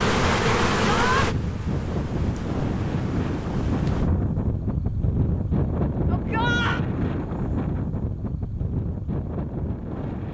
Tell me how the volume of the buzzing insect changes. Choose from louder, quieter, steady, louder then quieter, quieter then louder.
quieter.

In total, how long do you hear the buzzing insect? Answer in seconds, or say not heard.
4 s.